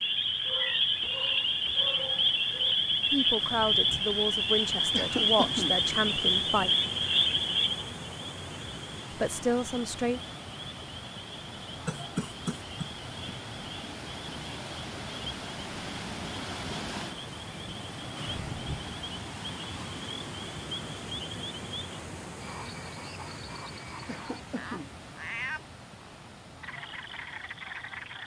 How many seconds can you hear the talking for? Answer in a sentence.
The talking can be heard for 5 seconds in total.